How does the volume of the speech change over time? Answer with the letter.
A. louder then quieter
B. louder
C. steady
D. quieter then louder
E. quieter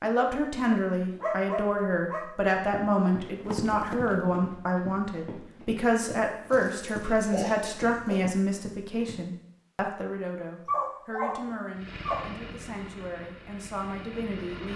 E.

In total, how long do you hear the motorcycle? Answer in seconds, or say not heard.
3 s.